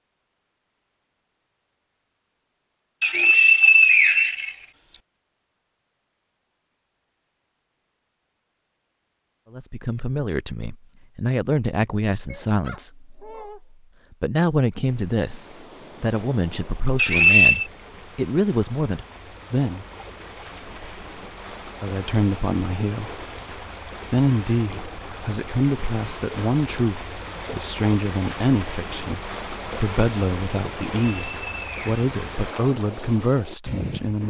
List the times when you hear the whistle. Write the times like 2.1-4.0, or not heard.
3.0-5.0, 16.9-17.6, 31.1-31.9.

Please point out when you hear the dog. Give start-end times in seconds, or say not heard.
12.2-13.6.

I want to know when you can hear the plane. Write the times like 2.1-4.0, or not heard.
not heard.